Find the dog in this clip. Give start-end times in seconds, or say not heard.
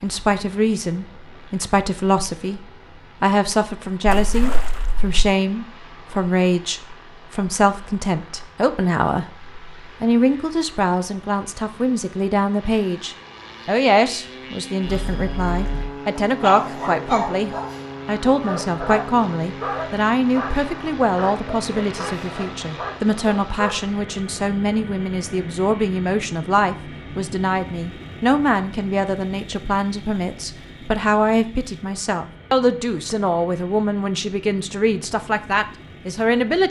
14.8-23.8.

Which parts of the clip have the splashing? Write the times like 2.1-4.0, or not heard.
4.0-5.2.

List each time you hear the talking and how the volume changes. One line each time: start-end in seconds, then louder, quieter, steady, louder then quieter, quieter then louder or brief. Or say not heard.
0.0-36.6 steady.